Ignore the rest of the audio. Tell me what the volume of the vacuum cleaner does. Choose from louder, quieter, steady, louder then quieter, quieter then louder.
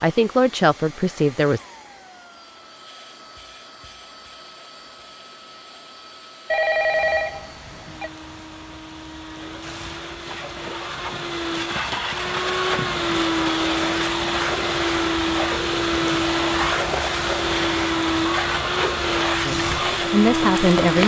louder.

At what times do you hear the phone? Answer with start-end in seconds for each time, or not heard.
6.5-8.1.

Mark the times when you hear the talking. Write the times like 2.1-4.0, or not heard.
0.0-1.6, 19.4-21.0.